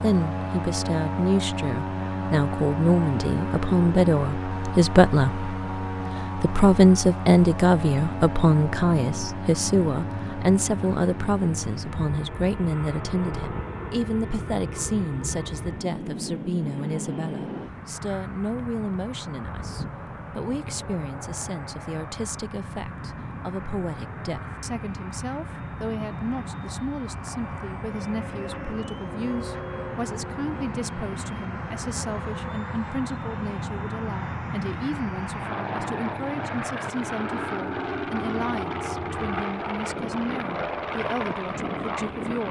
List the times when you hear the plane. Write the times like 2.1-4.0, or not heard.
0.0-42.4.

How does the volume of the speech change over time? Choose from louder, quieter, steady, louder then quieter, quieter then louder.
quieter.